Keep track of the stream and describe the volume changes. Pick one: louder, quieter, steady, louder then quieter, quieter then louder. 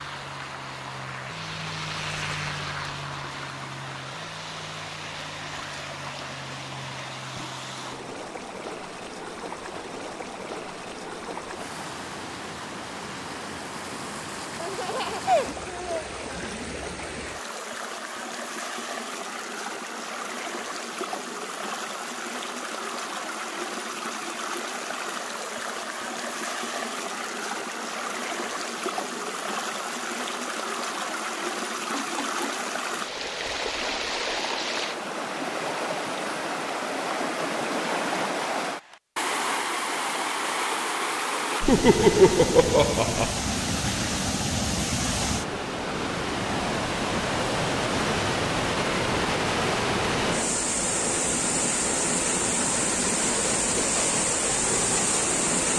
louder.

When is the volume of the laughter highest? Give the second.
42 s.